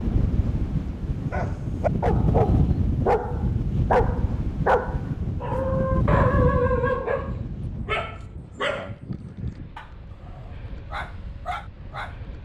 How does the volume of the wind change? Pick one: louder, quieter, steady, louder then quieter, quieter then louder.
quieter.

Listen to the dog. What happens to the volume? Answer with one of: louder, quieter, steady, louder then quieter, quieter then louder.
quieter.